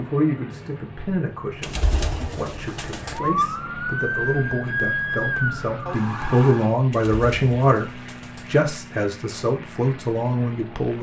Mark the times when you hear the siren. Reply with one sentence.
You can hear the siren from 3.0 to 6.8 s.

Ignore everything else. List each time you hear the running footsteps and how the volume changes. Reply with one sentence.
The running footsteps can't be heard in this clip.